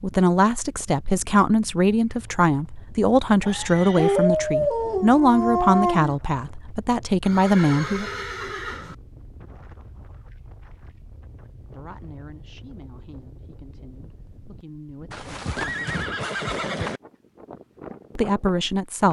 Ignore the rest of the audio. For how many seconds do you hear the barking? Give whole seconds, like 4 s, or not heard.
2 s.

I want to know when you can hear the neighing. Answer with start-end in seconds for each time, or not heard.
3.4-4.3, 7.2-8.9, 15.1-17.0.